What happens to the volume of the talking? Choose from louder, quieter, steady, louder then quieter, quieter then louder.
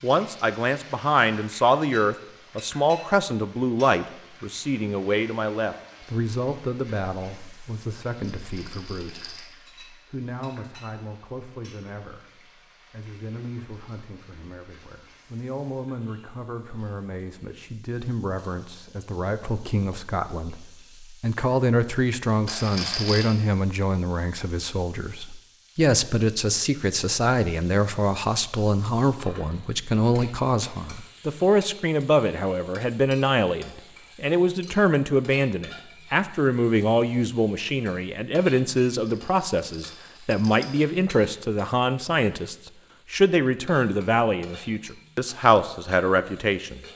quieter then louder.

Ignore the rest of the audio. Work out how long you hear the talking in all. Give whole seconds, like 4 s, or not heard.
47 s.